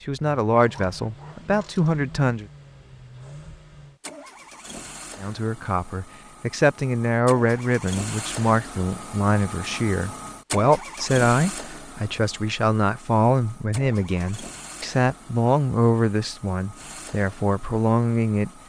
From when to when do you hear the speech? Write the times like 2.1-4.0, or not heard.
0.1-2.5, 5.2-18.5.